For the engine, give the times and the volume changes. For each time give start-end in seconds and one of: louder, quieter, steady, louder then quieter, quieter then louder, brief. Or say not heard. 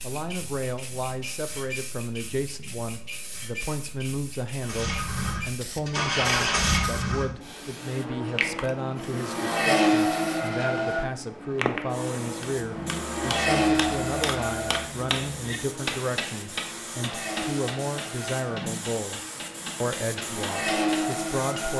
4.6-21.7 quieter then louder.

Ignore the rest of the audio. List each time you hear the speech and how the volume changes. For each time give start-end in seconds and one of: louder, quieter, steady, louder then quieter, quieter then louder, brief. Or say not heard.
0.0-21.7 steady.